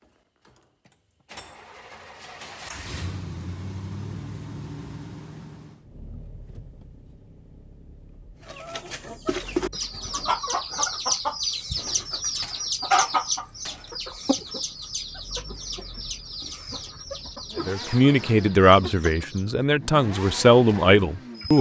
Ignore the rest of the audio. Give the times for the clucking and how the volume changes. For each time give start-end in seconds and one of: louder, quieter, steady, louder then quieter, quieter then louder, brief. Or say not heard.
8.4-19.6 quieter.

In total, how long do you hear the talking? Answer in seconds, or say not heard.
4 s.